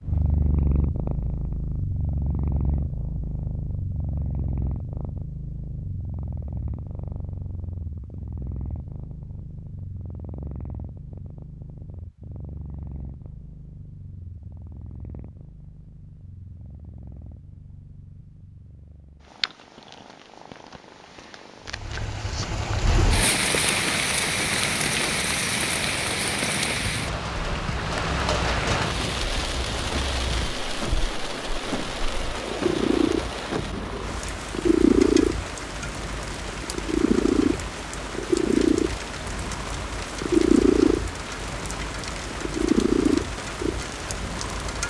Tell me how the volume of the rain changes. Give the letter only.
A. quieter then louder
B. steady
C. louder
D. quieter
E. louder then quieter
D.